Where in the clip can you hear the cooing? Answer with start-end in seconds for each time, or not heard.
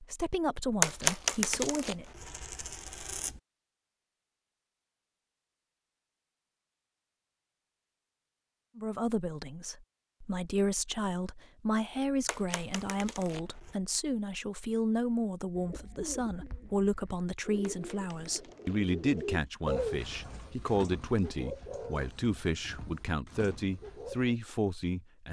15.6-24.4.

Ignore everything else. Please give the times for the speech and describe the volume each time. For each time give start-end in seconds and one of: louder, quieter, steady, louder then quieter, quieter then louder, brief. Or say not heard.
0.0-2.0 brief
8.8-25.2 steady.